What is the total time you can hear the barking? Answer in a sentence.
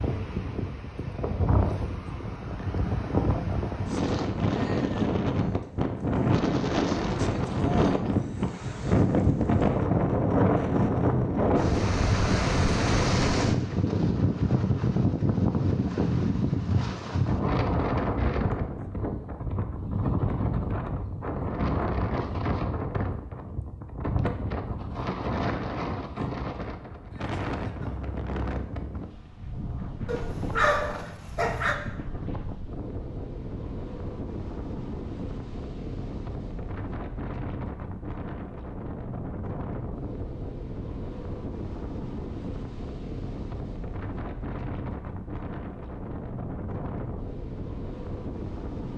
The barking can be heard for 2 seconds in total.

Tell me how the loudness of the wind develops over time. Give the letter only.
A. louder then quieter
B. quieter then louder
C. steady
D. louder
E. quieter
E.